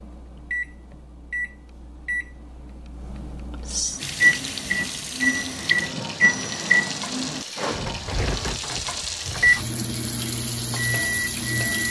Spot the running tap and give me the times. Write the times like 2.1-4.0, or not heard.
4.0-11.8.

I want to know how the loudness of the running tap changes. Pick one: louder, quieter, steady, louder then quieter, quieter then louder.
steady.